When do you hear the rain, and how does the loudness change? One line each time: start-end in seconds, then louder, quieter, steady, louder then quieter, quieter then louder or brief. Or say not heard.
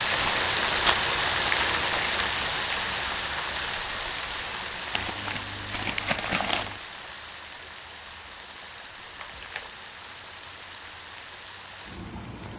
0.0-12.5 quieter.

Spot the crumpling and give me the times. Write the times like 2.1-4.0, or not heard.
0.1-2.3, 4.9-6.8, 9.1-9.8.